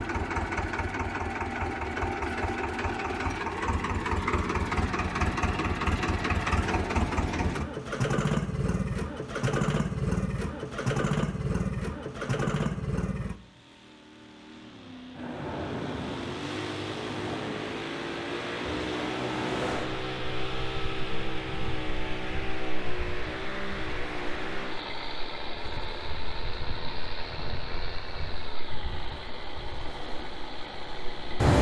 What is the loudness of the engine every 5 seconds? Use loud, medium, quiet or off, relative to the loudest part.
loud, loud, loud, medium, medium, medium, quiet.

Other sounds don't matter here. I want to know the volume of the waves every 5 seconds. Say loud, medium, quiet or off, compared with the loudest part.
off, off, off, medium, quiet, quiet, loud.